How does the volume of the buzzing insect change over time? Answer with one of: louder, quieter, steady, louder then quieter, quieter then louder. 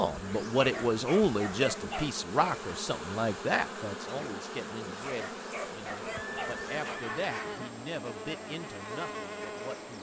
steady.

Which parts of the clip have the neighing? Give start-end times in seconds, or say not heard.
6.0-7.8.